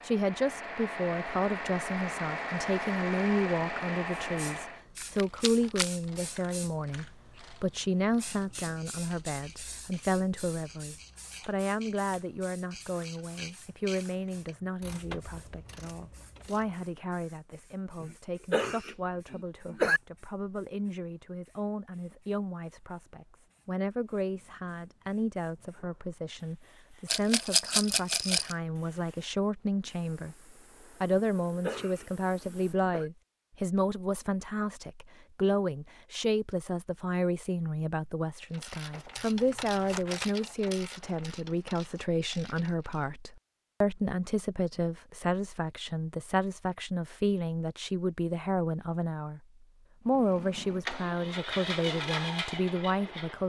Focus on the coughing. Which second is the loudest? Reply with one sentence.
The volume of the coughing peaks at 20 seconds.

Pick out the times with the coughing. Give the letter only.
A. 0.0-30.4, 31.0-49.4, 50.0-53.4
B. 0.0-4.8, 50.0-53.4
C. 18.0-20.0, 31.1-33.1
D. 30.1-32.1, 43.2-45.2
C.